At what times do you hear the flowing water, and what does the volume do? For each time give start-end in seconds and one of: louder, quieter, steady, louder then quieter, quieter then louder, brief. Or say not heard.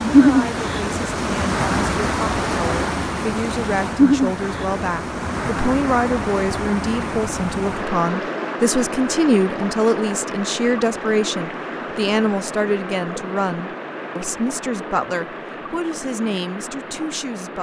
0.0-17.5 quieter.